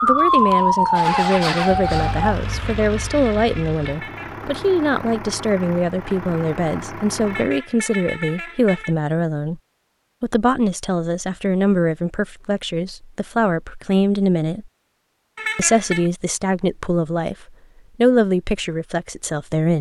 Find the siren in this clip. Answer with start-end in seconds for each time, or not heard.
0.0-2.4.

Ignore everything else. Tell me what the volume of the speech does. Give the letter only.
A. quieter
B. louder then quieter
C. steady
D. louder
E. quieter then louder
C.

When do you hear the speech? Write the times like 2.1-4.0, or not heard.
0.0-9.6, 10.2-14.7, 15.6-19.7.